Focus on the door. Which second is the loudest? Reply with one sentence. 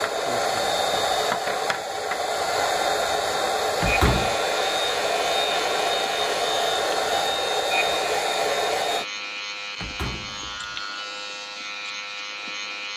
The volume of the door peaks at 4 seconds.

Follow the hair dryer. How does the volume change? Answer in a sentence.
The loudness of the hair dryer stays about the same.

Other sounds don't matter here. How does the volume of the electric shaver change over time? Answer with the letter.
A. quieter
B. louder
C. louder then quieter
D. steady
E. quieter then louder
D.